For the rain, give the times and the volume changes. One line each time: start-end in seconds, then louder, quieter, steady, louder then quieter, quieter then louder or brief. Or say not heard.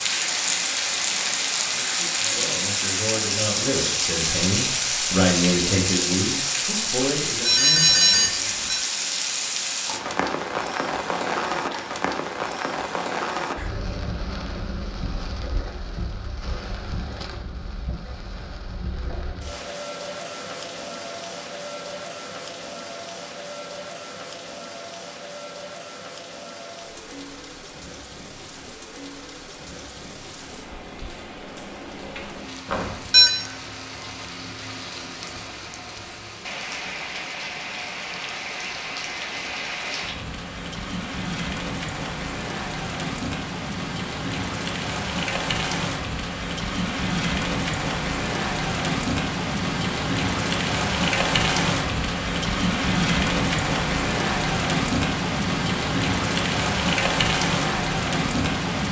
0.0-58.8 quieter then louder.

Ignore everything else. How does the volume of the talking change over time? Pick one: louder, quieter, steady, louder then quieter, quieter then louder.
louder then quieter.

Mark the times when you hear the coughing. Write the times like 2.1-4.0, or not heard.
not heard.